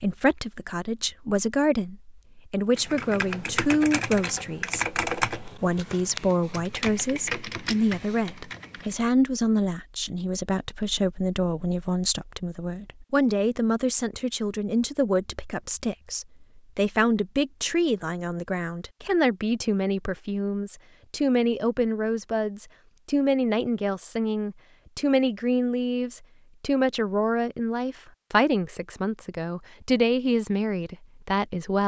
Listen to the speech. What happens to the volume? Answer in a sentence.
The volume of the speech stays about the same.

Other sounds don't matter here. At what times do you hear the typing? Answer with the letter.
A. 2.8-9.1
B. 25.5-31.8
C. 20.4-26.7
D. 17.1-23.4
A.